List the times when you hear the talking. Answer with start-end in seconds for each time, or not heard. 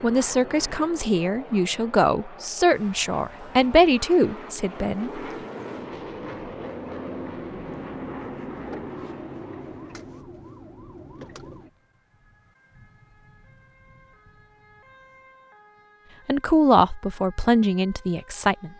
0.0-5.2, 16.2-18.7.